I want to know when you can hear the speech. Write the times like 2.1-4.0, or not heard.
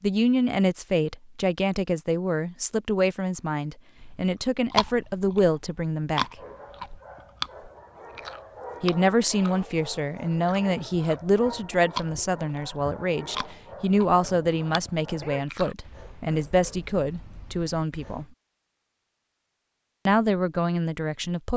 0.0-6.2, 8.8-18.2, 20.1-21.5.